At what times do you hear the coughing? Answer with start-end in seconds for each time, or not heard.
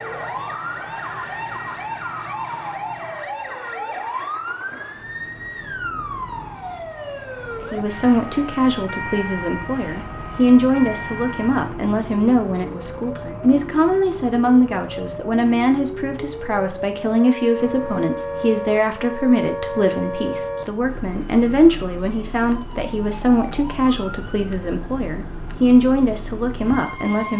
not heard.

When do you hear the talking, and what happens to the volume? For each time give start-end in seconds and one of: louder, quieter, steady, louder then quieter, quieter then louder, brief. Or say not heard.
7.6-27.3 steady.